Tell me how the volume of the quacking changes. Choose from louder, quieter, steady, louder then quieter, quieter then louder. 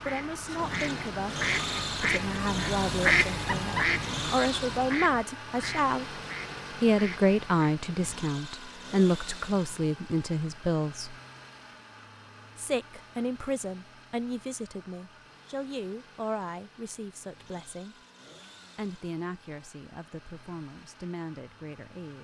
louder then quieter.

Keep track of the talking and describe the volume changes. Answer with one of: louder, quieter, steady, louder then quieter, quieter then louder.
louder then quieter.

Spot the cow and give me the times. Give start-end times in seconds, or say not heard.
not heard.